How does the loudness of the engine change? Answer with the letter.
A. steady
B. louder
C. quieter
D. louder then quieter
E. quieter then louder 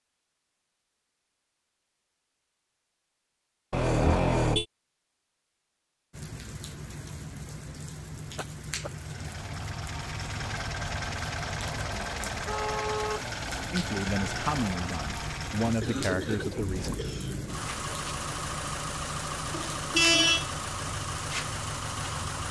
A.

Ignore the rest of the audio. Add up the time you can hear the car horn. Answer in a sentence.
The car horn can be heard for 4 seconds in total.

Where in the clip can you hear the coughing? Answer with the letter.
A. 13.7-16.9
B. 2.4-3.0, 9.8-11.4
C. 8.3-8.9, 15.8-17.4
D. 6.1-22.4
C.